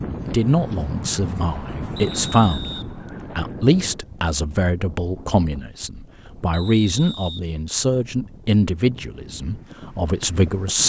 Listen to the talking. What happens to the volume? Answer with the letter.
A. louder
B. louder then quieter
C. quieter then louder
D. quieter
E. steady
E.